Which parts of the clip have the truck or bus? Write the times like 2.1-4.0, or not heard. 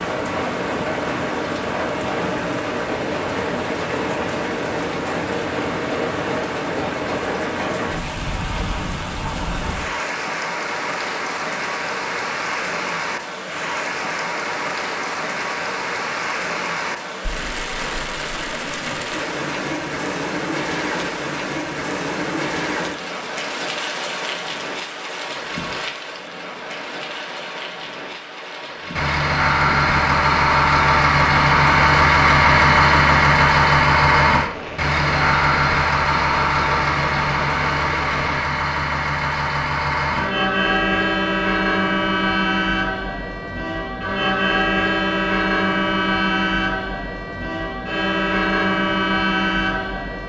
28.9-50.2.